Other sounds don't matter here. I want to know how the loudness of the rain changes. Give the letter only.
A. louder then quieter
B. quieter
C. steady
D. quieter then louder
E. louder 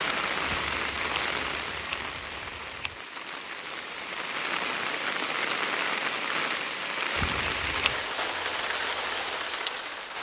D.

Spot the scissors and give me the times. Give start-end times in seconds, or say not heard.
0.5-3.0, 7.2-8.0.